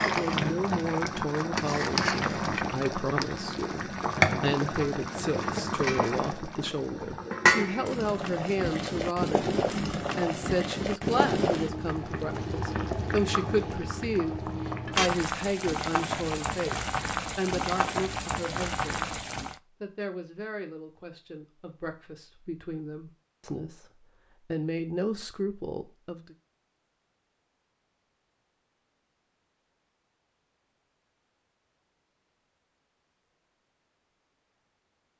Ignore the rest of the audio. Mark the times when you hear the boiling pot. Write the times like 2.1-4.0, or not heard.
0.0-19.6.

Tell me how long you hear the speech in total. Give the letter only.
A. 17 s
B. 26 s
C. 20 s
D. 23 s
B.